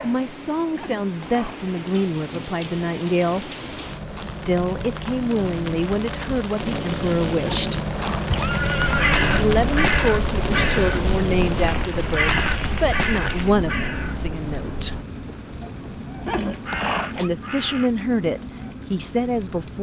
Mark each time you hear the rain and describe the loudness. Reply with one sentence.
You can hear the rain from 0.0 to 19.7 s, getting louder then quieter.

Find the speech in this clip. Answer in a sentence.
You can hear the speech from 0.0 to 3.5 s, from 4.2 to 7.8 s, from 9.3 to 15.0 s and from 17.1 to 19.7 s.